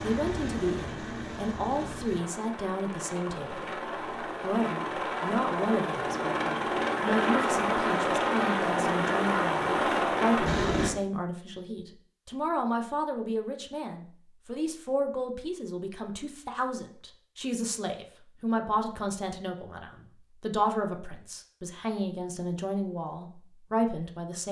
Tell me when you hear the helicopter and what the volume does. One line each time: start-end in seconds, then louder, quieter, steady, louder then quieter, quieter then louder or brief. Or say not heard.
0.0-10.9 louder.